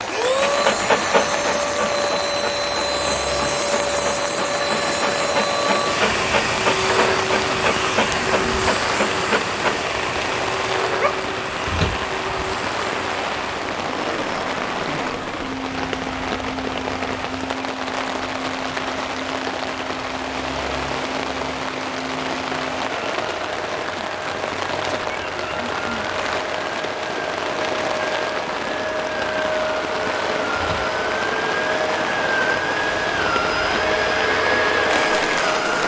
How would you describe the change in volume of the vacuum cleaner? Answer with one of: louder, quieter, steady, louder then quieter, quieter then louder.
quieter then louder.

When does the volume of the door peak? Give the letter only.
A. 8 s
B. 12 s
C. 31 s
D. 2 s
B.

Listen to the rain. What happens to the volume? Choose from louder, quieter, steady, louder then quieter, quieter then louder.
steady.